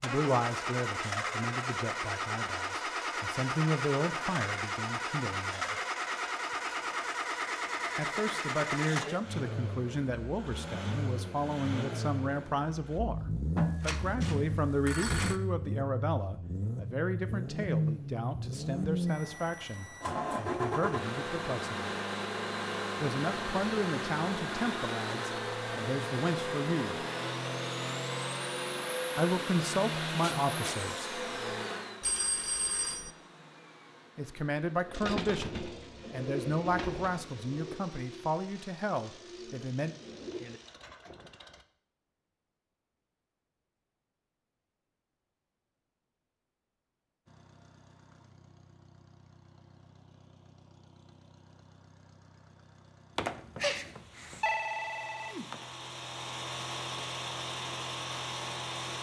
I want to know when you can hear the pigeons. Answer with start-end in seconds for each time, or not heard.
34.8-40.6.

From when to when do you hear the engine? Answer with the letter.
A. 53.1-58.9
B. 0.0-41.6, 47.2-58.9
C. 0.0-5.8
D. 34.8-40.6
B.